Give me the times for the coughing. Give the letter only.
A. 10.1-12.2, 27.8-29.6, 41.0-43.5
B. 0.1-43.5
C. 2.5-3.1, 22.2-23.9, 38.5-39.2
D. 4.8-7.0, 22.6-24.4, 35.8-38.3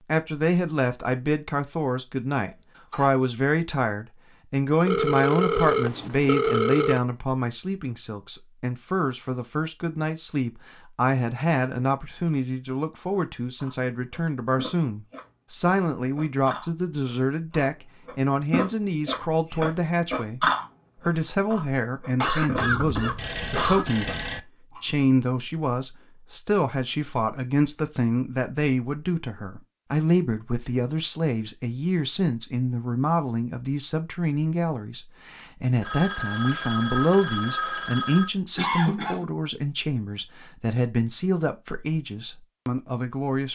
C.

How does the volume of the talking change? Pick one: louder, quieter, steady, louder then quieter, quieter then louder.
steady.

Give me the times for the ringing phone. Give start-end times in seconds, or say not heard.
4.8-7.0, 22.6-24.4, 35.8-38.3.